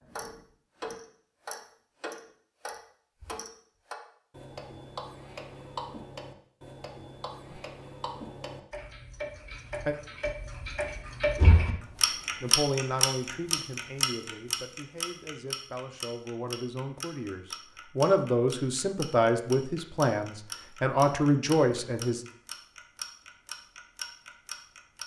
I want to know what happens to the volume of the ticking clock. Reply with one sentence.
The loudness of the ticking clock goes up, then down.